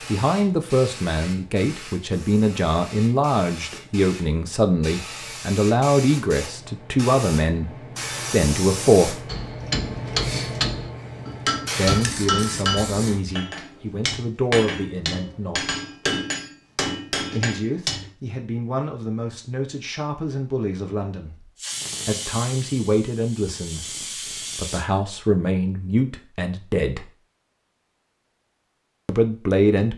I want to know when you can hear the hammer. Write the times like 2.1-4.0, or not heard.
9.2-18.1.